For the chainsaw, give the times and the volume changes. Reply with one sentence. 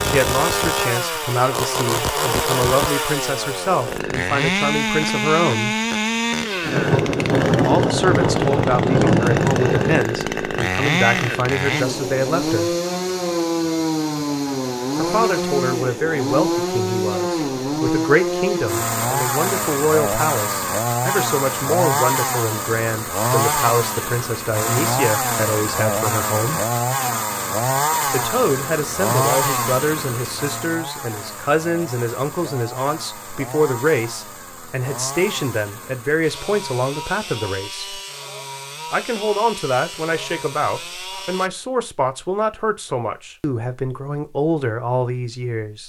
The chainsaw can be heard from 0.0 to 41.5 s, getting quieter.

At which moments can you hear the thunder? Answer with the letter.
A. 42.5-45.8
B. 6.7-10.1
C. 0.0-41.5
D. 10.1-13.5
B.